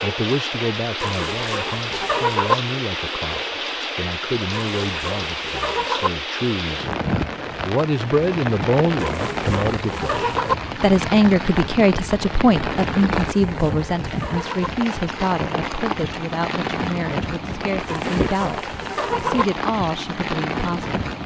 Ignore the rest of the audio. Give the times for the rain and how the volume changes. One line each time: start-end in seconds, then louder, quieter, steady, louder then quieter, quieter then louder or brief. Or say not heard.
0.0-21.2 steady.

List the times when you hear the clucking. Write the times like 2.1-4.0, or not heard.
1.0-2.5, 4.5-6.1, 9.0-10.6, 13.2-14.7, 17.9-19.4.